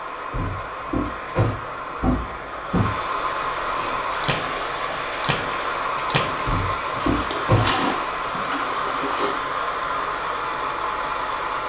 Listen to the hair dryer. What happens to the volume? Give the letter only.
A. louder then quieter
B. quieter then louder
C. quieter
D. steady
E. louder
E.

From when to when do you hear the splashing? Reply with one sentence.
The splashing can be heard from 3.7 to 9.3 s.